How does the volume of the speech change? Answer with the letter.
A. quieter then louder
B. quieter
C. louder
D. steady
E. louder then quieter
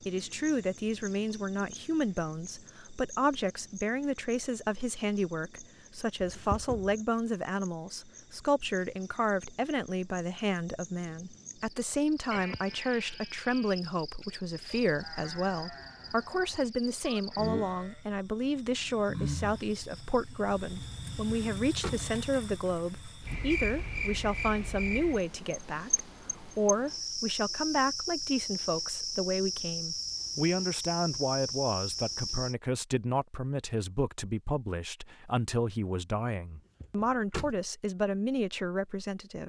D.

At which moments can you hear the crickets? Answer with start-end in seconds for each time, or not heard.
0.0-32.5.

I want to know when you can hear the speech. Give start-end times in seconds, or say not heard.
0.1-39.4.